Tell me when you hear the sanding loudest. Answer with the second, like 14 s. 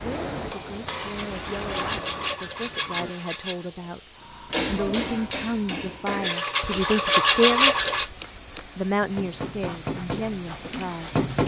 8 s.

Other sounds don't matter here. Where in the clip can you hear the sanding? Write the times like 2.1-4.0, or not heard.
1.0-3.7, 6.2-8.1.